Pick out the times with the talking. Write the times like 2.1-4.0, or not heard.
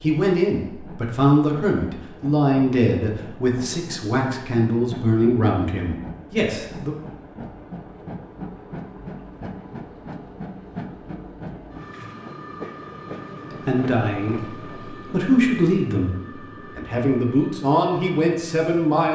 0.0-7.0, 13.4-19.1.